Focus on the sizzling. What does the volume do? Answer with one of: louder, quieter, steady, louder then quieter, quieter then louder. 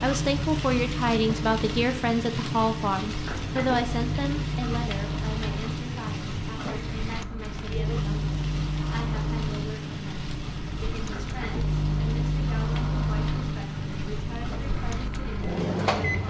quieter.